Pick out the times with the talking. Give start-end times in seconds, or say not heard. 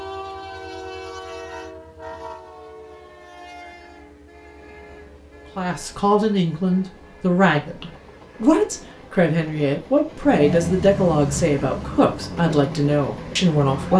5.5-13.9.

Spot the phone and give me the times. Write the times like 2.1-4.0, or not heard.
not heard.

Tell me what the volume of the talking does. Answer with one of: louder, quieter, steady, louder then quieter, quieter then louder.
steady.